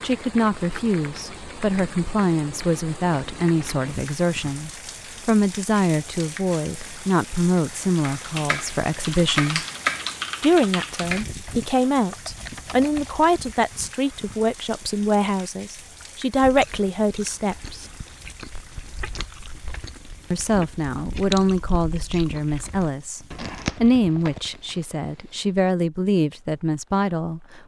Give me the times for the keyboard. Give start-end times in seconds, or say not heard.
8.0-13.3.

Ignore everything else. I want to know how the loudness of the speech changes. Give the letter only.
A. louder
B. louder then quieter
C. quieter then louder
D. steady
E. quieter
D.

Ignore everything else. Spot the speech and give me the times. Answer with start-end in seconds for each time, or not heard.
0.0-9.7, 10.4-17.9, 20.3-27.4.